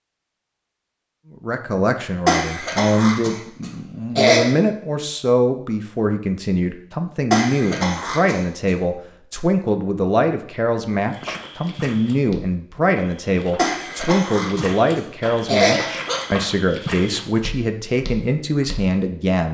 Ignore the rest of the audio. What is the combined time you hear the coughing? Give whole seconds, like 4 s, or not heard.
6 s.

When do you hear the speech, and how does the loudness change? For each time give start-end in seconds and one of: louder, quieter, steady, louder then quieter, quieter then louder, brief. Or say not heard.
1.3-19.4 steady.